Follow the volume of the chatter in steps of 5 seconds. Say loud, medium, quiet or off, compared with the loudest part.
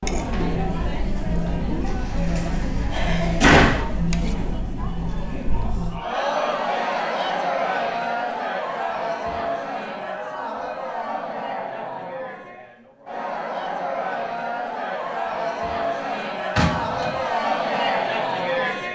loud, loud, medium, loud.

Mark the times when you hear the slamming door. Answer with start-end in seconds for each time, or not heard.
1.9-3.8, 16.6-17.2.